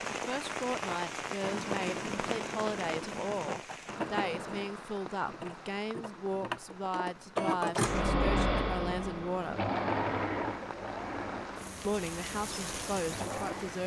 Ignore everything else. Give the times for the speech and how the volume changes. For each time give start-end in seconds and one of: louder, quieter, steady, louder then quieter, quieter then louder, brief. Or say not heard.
0.1-9.7 steady
11.8-13.8 brief.